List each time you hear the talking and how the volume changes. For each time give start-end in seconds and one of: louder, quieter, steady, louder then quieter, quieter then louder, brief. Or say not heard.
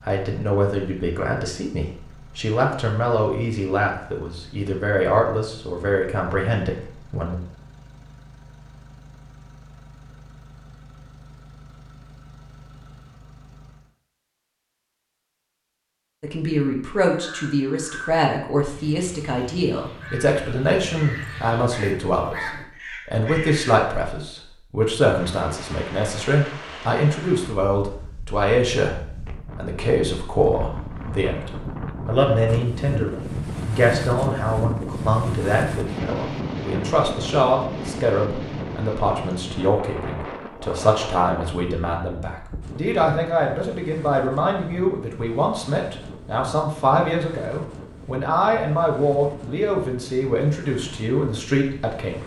0.0-7.3 steady
16.2-52.2 steady.